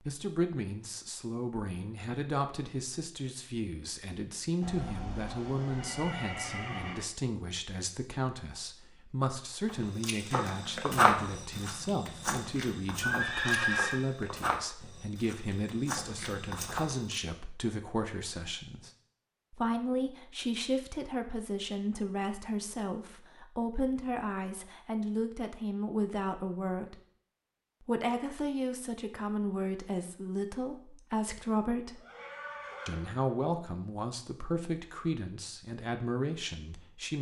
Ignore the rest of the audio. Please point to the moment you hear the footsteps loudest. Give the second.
11 s.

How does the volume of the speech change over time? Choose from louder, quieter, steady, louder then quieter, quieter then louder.
steady.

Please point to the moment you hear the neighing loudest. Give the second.
14 s.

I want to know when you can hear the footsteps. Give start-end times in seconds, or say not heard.
10.0-17.2.